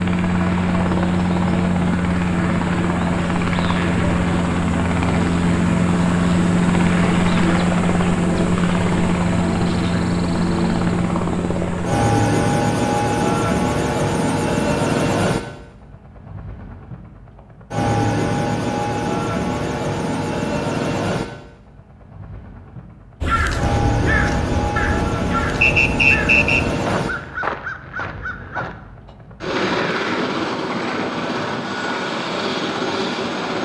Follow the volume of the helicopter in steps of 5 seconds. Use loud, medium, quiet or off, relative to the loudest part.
loud, loud, loud, medium, medium, medium, medium.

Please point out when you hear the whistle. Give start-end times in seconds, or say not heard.
25.6-26.6.